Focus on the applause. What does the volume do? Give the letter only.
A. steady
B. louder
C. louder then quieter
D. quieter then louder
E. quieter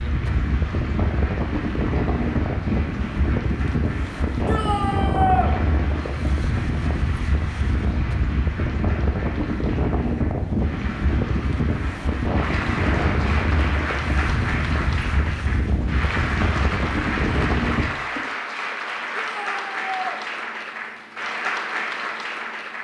B.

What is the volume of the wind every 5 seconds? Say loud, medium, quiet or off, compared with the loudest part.
loud, loud, loud, loud, off.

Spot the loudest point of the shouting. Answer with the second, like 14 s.
5 s.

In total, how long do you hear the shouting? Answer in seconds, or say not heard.
2 s.